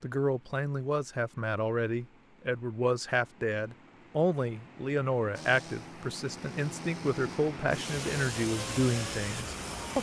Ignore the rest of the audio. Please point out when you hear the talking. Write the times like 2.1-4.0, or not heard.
0.0-9.9.